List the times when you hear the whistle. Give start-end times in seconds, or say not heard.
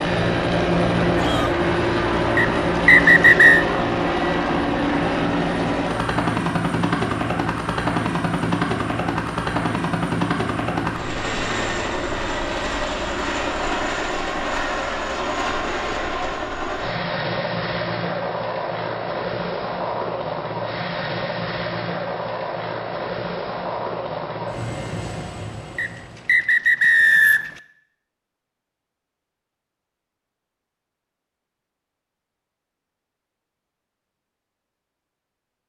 2.4-3.6, 25.8-27.6.